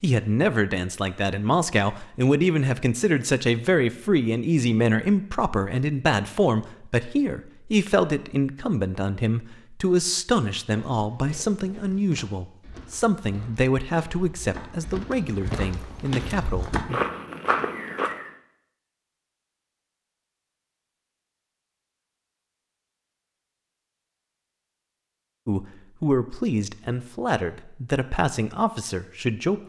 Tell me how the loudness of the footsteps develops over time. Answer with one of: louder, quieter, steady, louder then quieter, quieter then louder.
louder.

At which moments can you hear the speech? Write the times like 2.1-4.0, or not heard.
0.0-16.9, 25.4-29.6.